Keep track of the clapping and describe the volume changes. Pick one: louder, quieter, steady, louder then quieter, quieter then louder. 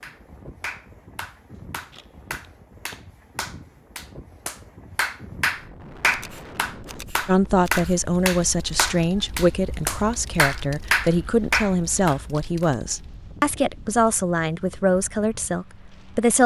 louder.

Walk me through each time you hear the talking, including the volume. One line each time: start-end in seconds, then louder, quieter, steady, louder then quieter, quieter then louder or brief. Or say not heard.
7.2-16.4 steady.